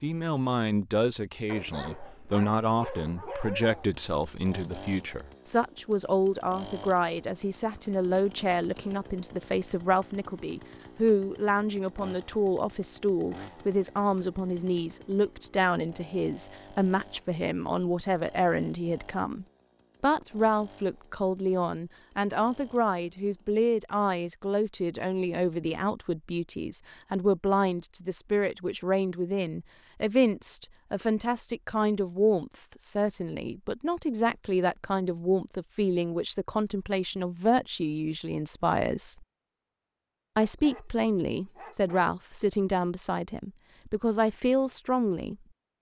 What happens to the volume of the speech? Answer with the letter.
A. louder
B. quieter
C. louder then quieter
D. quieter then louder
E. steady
E.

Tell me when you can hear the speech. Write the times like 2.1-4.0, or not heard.
0.0-39.2, 40.4-45.4.